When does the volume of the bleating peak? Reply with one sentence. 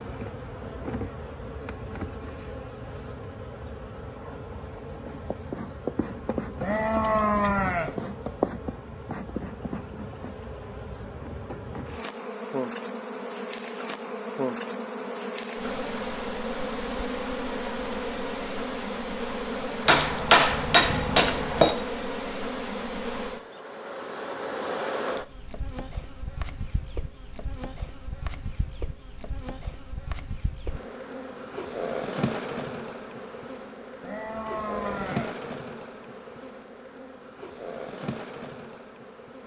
The volume of the bleating peaks at 7 seconds.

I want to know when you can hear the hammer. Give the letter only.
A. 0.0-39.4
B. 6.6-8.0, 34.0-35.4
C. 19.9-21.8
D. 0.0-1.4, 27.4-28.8
C.